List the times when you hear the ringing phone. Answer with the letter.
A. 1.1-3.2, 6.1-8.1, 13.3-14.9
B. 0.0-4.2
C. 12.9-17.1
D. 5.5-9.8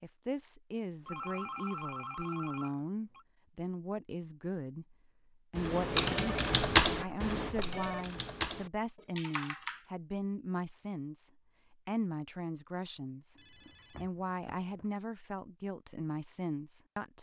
A.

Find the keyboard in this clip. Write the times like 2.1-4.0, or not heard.
5.5-9.8.